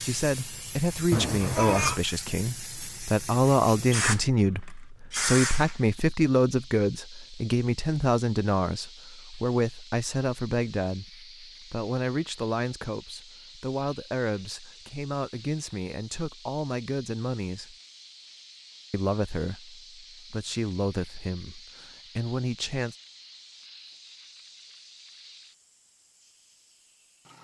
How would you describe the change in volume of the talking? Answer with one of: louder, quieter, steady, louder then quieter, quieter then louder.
quieter.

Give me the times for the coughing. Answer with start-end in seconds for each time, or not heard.
1.1-2.0.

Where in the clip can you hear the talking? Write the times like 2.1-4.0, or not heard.
0.0-17.8, 18.9-22.9.